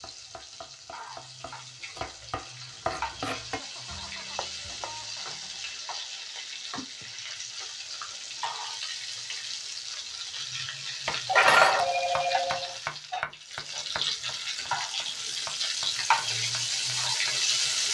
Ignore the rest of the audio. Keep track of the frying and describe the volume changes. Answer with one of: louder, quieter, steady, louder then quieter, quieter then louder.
louder.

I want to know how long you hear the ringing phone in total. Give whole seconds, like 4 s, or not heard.
2 s.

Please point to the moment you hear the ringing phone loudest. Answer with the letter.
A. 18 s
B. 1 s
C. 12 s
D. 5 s
C.